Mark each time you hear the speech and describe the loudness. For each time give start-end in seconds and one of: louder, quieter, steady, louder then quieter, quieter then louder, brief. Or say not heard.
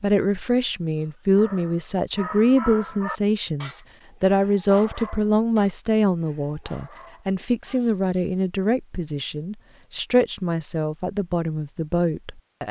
0.0-12.6 steady.